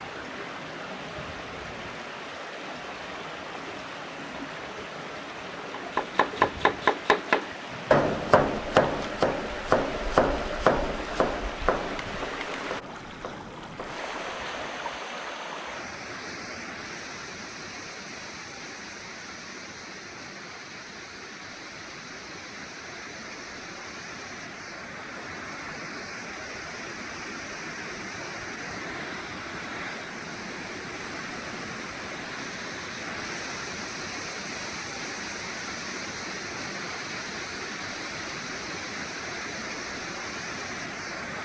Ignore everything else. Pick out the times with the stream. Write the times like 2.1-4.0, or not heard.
0.0-41.3.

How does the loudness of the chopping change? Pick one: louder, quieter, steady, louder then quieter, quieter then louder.
quieter.